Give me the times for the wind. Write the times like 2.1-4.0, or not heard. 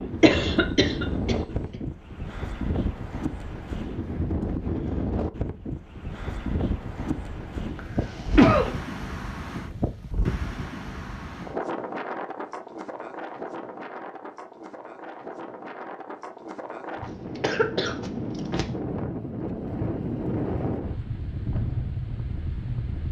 0.0-23.0.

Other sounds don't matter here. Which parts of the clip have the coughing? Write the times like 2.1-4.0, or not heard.
0.2-1.8, 7.8-8.8, 17.0-18.6.